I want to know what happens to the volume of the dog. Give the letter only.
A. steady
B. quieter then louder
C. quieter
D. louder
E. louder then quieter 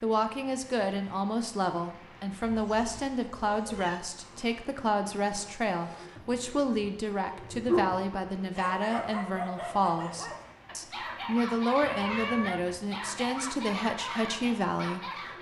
C.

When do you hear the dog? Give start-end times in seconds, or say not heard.
5.8-15.3.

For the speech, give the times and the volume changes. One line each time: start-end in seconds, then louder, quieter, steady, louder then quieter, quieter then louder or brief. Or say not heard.
0.0-15.3 steady.